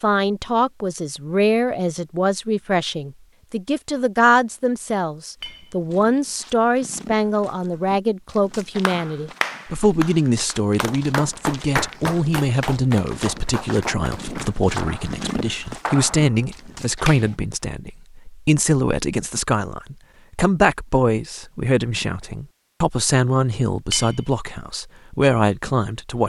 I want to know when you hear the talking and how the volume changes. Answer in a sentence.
You can hear the talking from 0.0 to 26.2 s, at a steady volume.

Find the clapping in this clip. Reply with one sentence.
The clapping can be heard from 8.8 to 17.4 s.